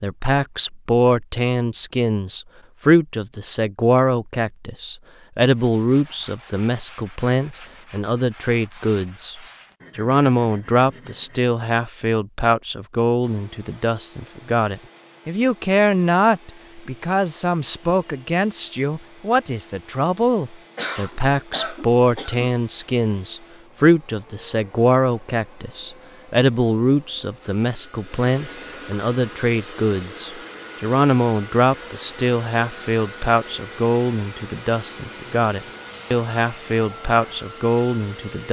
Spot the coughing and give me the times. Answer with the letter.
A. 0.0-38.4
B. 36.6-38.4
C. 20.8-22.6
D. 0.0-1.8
C.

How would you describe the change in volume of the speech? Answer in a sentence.
The volume of the speech stays about the same.